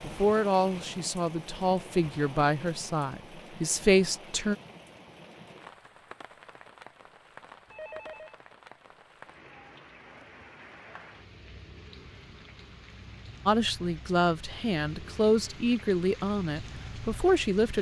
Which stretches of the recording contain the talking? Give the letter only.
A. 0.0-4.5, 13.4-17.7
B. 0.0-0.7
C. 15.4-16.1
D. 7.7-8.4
A.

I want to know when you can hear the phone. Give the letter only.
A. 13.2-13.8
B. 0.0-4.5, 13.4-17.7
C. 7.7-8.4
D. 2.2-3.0
C.